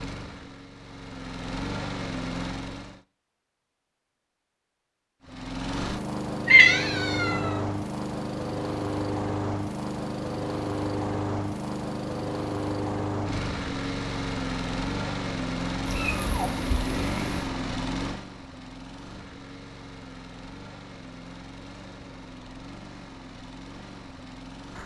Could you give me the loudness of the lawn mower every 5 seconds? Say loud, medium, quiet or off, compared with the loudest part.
medium, loud, loud, loud, quiet.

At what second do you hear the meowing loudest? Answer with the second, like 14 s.
7 s.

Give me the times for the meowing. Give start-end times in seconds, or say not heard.
6.5-7.6, 15.8-17.4.